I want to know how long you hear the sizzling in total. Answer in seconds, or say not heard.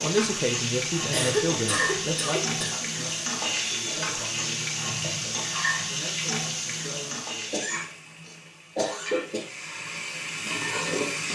11 s.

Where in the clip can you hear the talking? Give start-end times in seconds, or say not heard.
0.0-7.6.